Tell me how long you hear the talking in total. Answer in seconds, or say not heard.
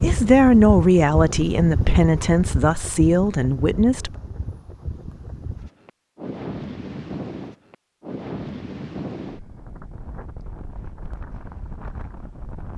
4 s.